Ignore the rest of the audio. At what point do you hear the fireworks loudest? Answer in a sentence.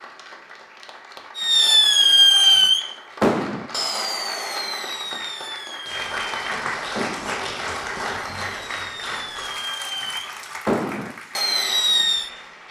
The loudest moment of the fireworks is at 2 seconds.